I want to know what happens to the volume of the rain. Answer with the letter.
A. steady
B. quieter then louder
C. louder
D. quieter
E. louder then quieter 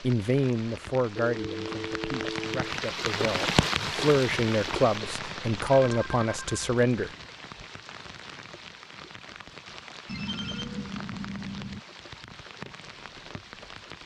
E.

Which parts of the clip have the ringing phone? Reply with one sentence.
You can hear the ringing phone from 1.1 to 2.8 s, from 5.8 to 6.5 s and from 10.1 to 11.8 s.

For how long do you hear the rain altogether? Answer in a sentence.
The rain can be heard for 14 seconds in total.